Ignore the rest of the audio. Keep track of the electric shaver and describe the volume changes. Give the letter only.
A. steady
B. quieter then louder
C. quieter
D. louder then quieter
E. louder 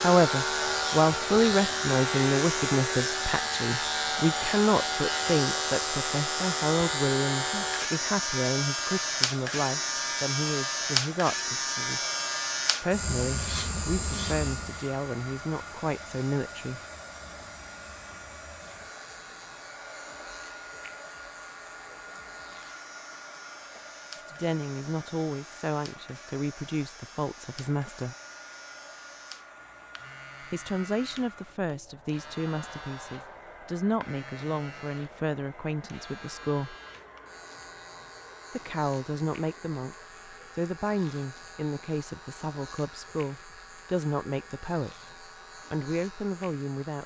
C.